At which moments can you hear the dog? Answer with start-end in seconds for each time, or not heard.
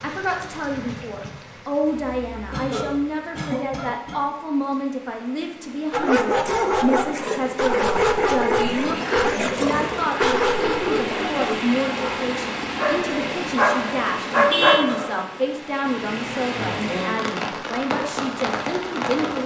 5.9-15.2.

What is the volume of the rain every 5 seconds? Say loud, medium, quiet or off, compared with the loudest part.
quiet, medium, loud, loud.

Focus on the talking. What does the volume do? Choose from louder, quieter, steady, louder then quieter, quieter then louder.
steady.